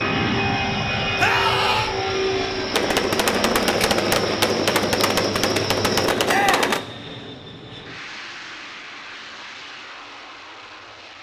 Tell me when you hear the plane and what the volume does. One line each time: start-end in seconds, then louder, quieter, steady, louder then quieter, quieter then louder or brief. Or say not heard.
0.0-11.1 quieter.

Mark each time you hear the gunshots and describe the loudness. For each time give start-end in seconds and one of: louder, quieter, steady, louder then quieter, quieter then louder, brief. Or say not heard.
2.7-6.8 steady.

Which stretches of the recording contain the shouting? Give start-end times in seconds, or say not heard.
1.1-1.9, 6.2-6.8.